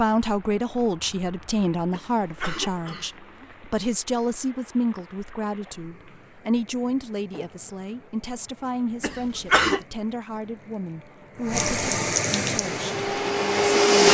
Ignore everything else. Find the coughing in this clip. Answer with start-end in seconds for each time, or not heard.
1.9-3.1, 9.0-9.8.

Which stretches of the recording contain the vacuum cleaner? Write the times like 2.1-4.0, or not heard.
12.4-14.0.